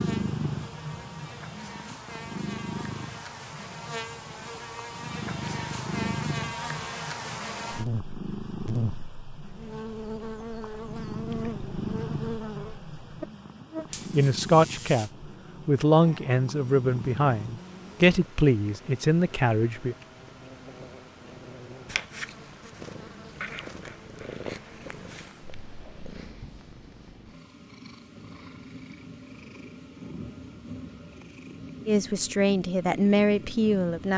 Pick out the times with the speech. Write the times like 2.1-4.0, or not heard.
14.1-19.9, 31.9-34.1.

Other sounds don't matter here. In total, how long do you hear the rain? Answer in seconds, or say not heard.
not heard.